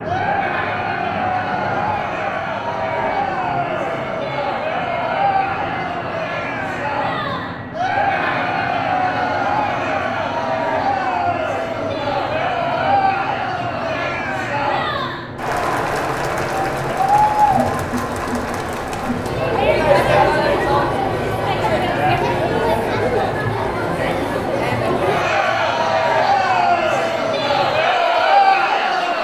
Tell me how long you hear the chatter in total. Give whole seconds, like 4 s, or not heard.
29 s.